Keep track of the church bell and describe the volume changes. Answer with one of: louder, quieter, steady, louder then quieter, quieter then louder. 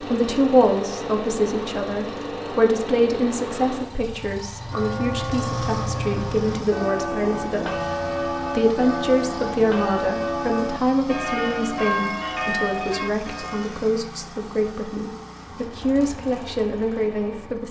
steady.